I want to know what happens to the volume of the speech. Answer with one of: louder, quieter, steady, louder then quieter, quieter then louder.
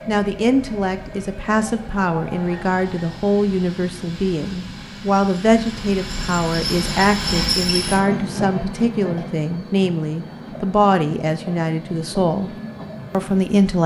steady.